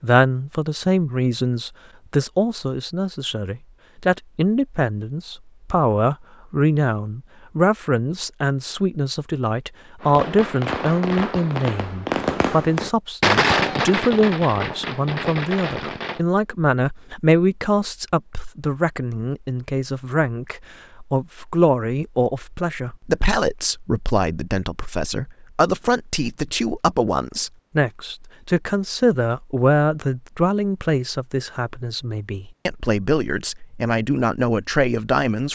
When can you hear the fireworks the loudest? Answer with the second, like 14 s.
13 s.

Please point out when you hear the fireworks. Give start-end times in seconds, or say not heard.
10.0-16.2.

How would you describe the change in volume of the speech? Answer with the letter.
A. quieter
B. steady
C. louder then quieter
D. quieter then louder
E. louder
B.